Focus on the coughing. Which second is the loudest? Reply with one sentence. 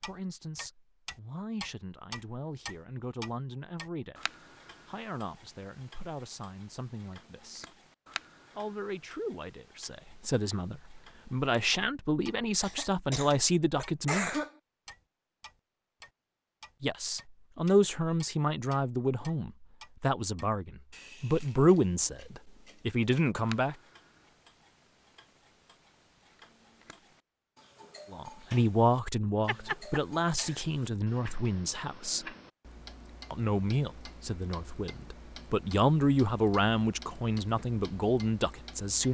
The loudest moment of the coughing is at 14 seconds.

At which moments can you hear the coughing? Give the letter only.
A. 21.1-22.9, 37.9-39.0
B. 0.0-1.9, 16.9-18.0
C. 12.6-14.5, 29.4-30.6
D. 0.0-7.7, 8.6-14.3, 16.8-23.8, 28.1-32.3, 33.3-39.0
C.